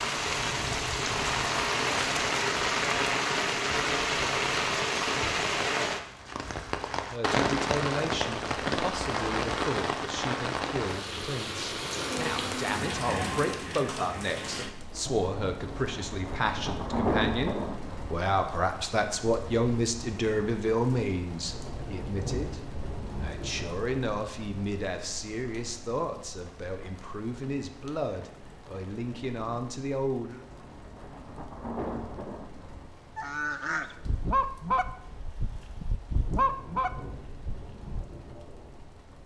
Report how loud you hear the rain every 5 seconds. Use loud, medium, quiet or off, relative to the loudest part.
loud, loud, medium, medium, quiet, quiet, quiet, quiet.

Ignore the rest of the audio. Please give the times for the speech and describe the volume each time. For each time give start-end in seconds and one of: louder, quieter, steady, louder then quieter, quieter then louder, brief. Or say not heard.
7.0-30.4 louder then quieter.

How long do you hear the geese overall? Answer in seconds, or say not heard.
5 s.